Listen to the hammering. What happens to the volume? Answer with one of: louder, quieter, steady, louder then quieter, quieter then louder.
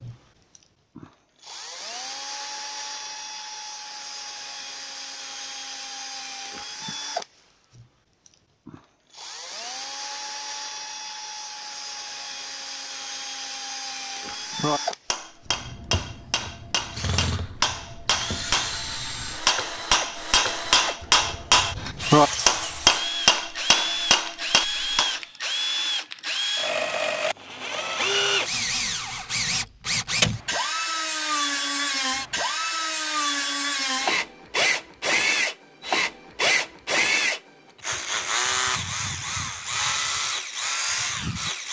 louder.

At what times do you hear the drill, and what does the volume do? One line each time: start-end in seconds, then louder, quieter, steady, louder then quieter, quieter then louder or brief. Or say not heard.
0.0-41.6 louder.